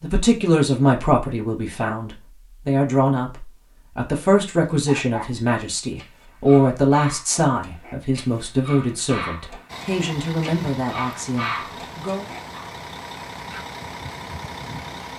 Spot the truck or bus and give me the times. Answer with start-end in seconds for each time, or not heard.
9.7-15.1.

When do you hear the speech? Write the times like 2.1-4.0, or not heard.
0.0-12.2.